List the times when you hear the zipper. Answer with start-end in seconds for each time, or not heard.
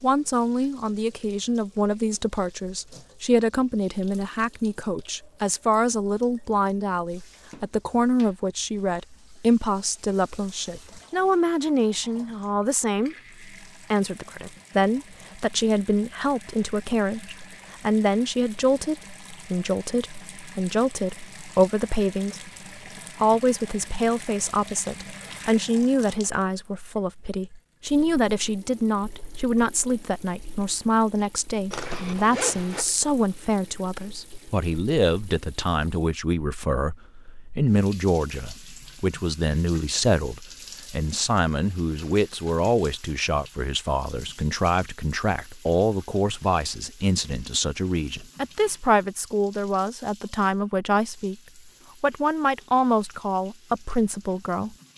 31.7-32.9.